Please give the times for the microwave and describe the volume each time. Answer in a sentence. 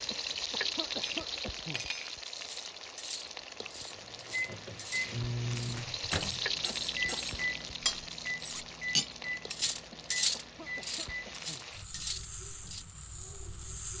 You can hear the microwave from 4.2 to 11.6 s, getting quieter.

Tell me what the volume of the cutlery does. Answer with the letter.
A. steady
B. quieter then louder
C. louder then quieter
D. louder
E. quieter
C.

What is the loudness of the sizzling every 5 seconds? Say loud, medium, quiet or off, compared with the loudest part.
loud, loud, medium.